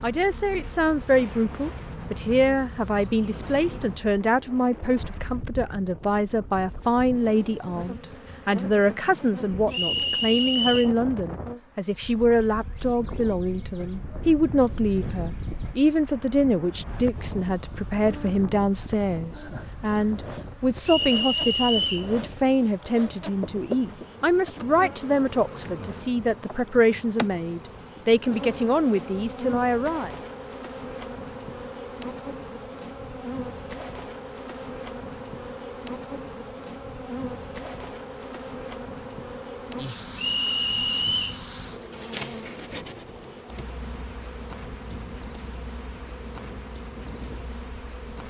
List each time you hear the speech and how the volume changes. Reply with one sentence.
The speech can be heard from 0.0 to 30.1 s, at a steady volume.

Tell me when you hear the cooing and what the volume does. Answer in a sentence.
The cooing can't be heard in this clip.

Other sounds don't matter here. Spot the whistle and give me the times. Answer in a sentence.
The whistle can be heard from 9.7 to 10.9 s, from 20.9 to 22.1 s and from 40.1 to 41.4 s.